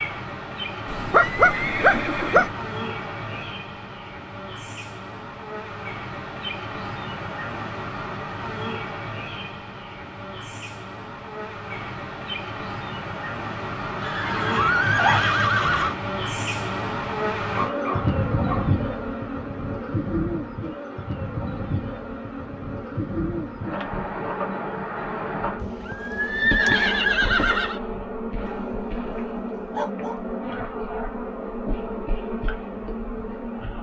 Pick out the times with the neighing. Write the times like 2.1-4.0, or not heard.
0.8-2.5, 14.0-15.9, 25.6-27.8.